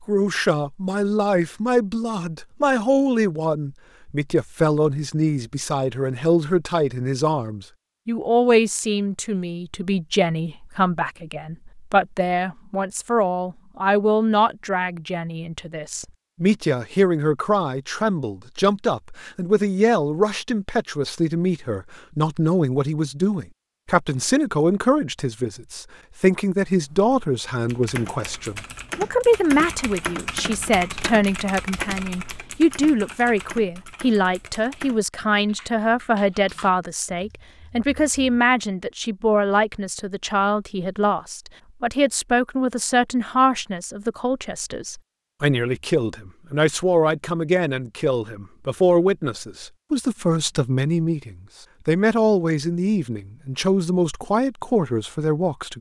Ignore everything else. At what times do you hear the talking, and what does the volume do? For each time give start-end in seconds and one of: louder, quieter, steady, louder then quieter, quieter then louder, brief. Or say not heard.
0.1-55.7 steady.